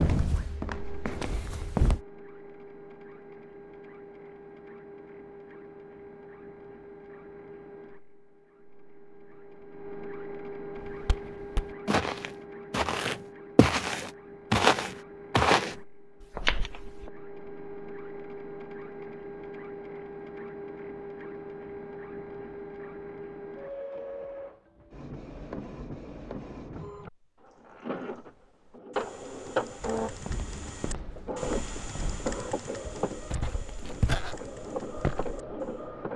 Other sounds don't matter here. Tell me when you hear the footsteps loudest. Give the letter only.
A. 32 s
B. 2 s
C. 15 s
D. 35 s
C.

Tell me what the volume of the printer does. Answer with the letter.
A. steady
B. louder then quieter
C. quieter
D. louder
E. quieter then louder
D.